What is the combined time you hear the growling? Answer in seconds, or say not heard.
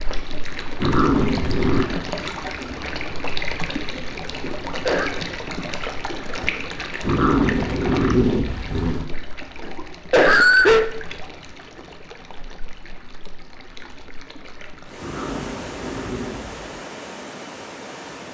5 s.